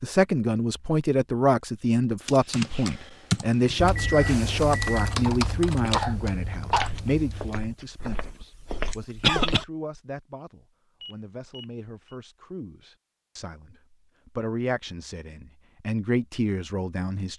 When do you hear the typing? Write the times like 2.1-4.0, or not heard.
1.9-7.8.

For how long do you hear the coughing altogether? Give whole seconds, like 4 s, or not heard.
2 s.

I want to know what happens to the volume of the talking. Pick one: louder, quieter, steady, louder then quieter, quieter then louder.
quieter then louder.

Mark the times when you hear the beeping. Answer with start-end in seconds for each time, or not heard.
4.0-5.2, 11.0-12.2.